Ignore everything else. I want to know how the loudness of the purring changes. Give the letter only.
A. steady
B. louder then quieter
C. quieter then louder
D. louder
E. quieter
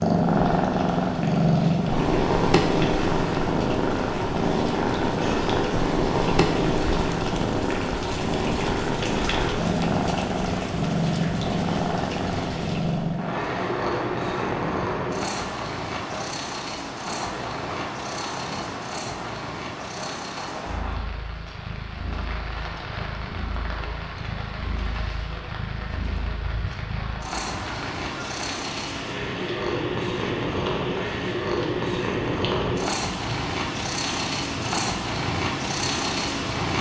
C.